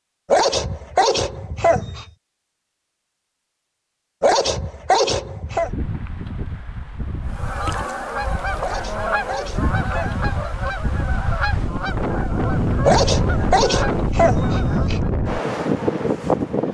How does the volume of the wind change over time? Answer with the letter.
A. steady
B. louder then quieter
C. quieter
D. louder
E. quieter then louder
D.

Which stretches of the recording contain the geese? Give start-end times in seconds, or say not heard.
7.3-15.1.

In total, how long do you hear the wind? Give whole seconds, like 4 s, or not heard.
11 s.